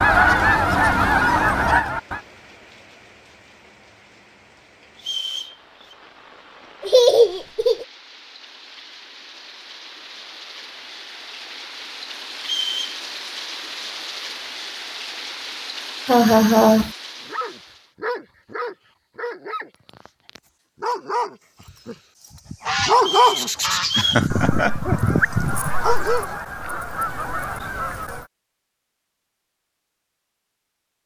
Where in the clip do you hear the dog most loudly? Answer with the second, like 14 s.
23 s.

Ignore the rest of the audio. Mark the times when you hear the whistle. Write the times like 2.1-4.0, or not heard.
5.0-6.0, 12.4-13.0, 22.9-24.2.